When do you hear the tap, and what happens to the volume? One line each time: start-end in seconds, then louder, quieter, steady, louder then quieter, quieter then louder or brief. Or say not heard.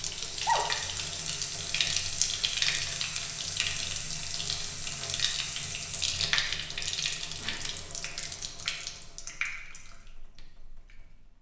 0.0-11.3 quieter.